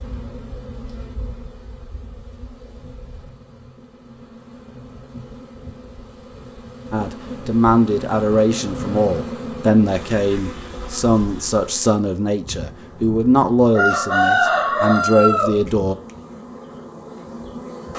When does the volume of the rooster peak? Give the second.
14 s.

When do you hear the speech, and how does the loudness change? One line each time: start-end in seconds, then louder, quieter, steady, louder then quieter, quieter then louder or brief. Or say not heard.
6.9-15.9 steady.